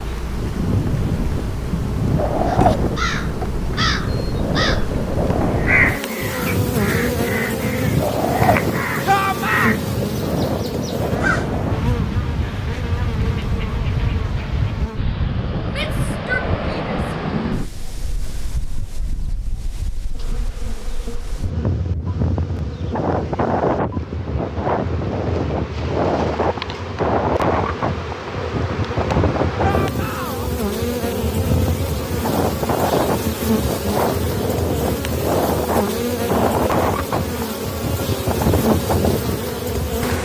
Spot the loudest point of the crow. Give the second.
6 s.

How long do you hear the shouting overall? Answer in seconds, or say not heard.
3 s.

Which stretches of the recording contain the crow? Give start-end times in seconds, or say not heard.
2.5-11.5.